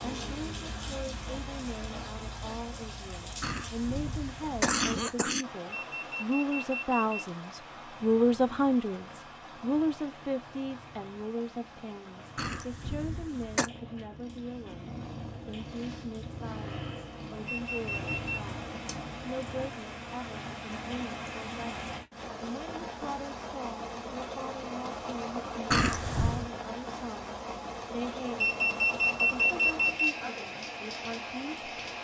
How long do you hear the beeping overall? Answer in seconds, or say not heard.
4 s.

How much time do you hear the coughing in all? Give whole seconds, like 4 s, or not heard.
4 s.